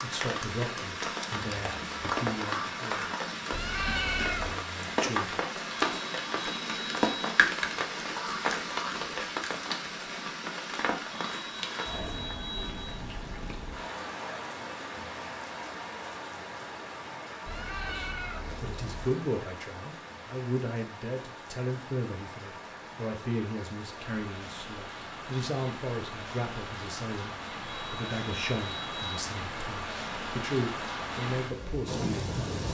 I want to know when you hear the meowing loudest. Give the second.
4 s.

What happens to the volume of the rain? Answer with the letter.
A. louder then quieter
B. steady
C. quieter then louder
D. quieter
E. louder
C.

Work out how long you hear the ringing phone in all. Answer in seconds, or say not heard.
5 s.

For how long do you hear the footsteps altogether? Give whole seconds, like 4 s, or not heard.
not heard.